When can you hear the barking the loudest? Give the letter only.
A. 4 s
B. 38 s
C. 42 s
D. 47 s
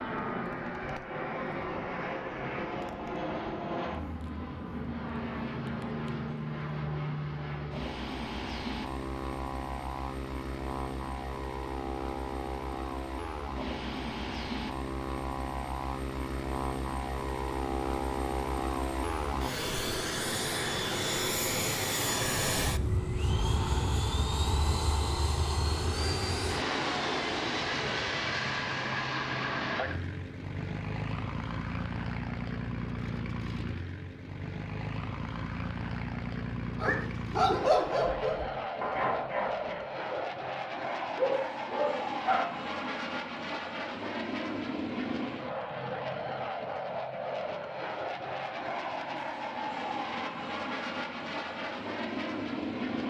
B.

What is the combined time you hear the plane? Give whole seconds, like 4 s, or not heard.
53 s.